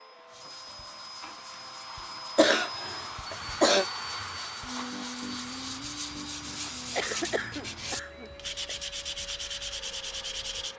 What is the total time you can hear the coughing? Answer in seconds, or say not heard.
3 s.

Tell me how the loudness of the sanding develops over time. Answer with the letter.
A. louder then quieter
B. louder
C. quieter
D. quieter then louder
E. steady
B.